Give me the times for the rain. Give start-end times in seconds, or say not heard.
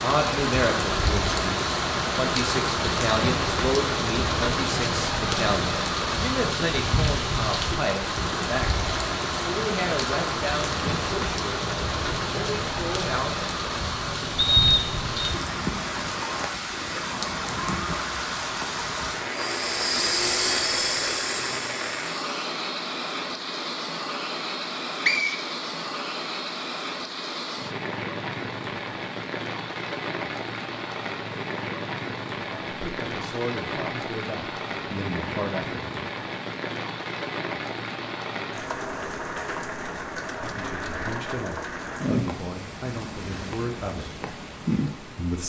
0.0-45.4.